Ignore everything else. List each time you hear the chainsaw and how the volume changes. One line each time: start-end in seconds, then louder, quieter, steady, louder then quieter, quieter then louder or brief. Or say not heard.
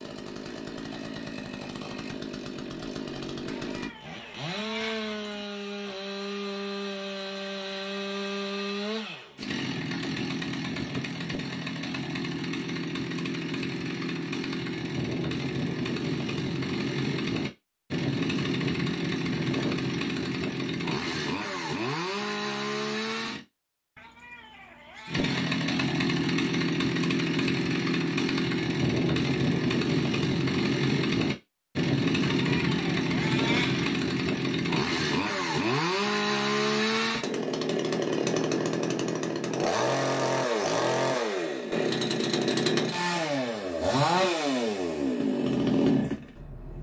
0.0-23.4 louder
25.1-46.7 steady.